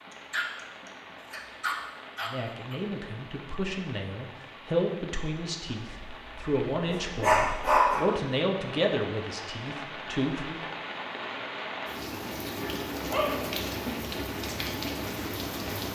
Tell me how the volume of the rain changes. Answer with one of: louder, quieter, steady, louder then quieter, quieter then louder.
louder.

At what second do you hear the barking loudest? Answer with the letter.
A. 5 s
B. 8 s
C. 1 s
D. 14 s
B.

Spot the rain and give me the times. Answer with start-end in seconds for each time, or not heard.
0.0-15.8.